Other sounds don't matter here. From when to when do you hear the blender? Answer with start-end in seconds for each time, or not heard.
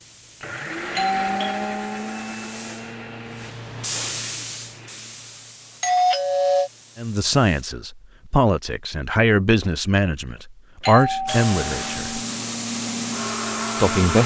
0.0-5.2, 11.1-14.2.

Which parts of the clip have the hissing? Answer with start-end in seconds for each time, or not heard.
0.0-7.7, 11.2-14.2.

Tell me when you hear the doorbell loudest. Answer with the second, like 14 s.
6 s.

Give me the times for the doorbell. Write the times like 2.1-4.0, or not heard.
0.9-2.1, 5.8-6.7, 10.8-11.9.